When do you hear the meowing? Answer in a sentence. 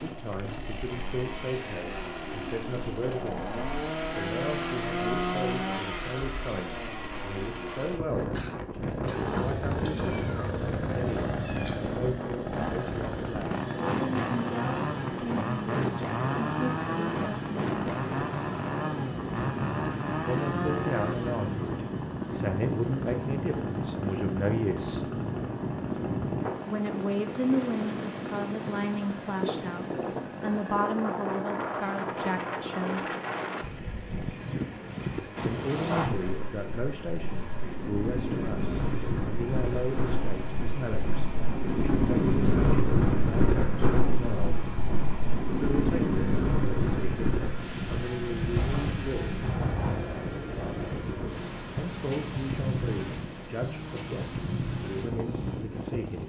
You can hear the meowing from 9.3 to 11.8 s.